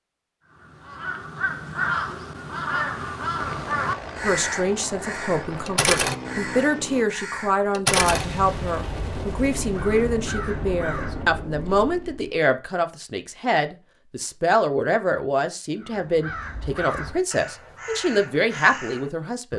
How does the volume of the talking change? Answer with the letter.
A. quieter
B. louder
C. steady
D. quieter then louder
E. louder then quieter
C.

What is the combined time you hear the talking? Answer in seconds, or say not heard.
15 s.